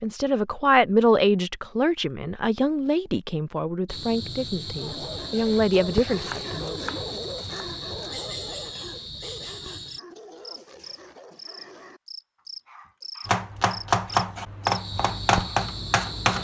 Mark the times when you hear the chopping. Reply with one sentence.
You can hear the chopping from 6.2 to 8.1 s and from 13.2 to 16.3 s.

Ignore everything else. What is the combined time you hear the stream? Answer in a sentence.
The stream can't be heard in this clip.